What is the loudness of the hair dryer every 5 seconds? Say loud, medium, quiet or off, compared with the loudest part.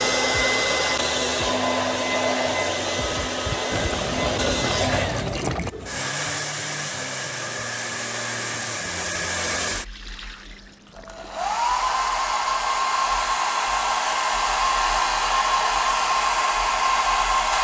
loud, medium, loud, loud.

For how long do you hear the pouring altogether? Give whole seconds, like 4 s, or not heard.
4 s.